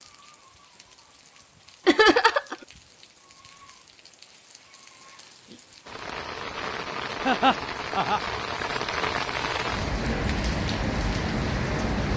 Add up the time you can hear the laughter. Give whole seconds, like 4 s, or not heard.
2 s.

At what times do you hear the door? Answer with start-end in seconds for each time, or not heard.
not heard.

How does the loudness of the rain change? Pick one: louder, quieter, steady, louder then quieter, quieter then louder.
louder.